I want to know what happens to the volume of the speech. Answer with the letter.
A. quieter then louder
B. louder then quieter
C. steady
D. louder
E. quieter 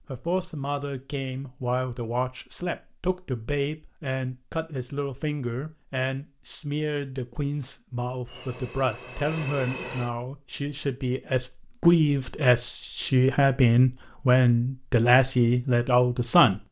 D.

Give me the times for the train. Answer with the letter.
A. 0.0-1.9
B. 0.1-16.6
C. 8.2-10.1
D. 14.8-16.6
C.